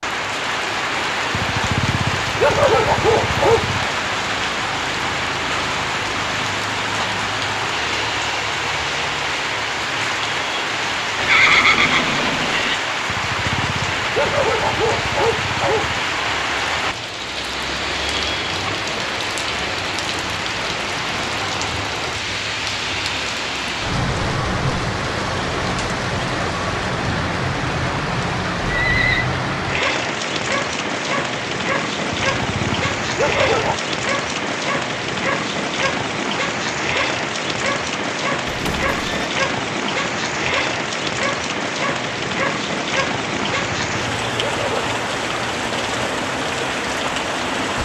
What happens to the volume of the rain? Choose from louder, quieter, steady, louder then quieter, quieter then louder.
steady.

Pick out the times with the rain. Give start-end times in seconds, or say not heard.
0.0-47.8.